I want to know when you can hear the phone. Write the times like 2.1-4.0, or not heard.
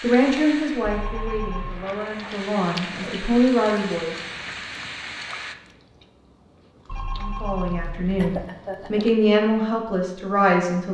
0.8-1.9, 6.8-8.4.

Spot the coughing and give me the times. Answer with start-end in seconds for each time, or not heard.
2.8-3.3, 8.2-9.1.